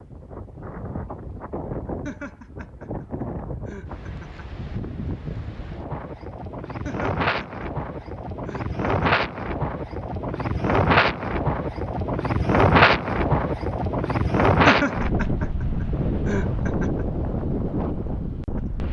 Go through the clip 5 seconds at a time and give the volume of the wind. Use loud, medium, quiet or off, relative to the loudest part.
quiet, medium, loud, medium.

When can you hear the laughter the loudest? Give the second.
15 s.